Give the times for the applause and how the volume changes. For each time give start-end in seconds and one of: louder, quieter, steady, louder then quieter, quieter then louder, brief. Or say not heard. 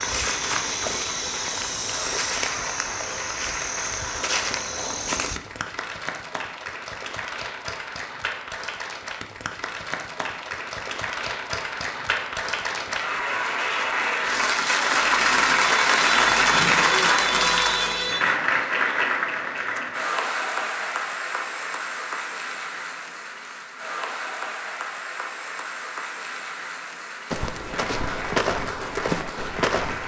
0.0-30.0 louder then quieter.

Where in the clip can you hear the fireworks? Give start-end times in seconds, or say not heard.
not heard.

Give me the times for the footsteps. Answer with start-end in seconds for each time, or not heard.
0.0-5.4, 27.3-30.0.